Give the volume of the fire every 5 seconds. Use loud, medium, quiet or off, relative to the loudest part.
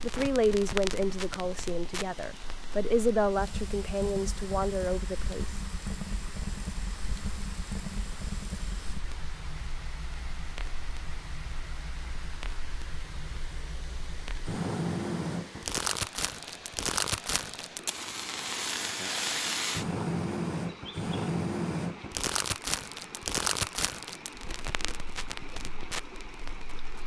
medium, medium, medium, loud, loud, medium.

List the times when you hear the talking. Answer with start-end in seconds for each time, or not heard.
0.0-5.5.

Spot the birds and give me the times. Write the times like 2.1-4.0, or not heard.
not heard.